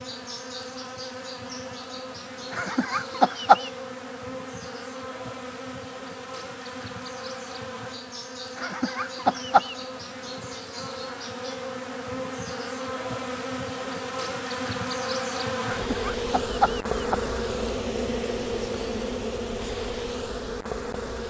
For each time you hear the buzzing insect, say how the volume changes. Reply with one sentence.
The buzzing insect can be heard from 0.0 to 21.2 s, getting louder.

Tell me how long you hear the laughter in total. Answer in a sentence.
The laughter can be heard for 4 seconds in total.